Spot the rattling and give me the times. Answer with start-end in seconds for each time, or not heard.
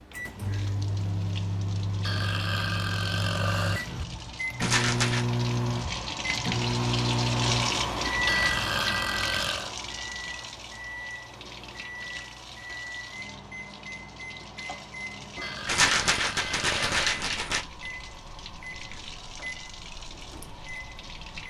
4.6-5.2, 15.7-17.6.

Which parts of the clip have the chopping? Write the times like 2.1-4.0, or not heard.
not heard.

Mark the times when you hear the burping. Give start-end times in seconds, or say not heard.
2.0-4.0, 8.2-9.7, 15.4-17.4.